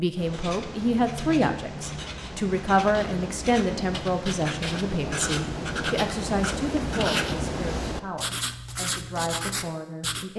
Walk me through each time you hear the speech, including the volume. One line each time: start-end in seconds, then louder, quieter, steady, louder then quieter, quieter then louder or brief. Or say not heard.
0.0-10.3 quieter.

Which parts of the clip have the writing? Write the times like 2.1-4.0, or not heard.
0.1-10.2.